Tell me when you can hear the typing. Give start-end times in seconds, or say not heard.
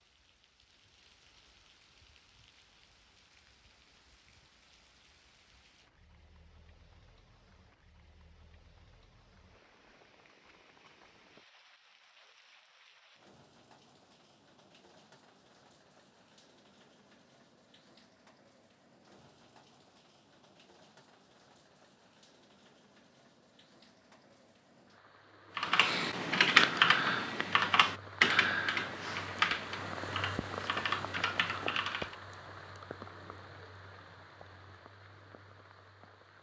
25.6-32.1.